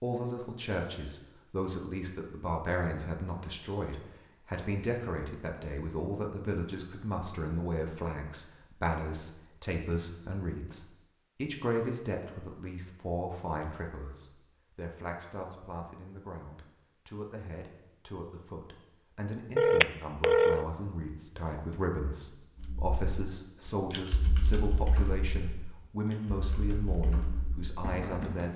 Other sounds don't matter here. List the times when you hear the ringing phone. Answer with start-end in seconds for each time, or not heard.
19.6-20.6.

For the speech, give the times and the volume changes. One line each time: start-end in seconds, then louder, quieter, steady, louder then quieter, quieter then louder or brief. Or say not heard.
0.0-28.5 steady.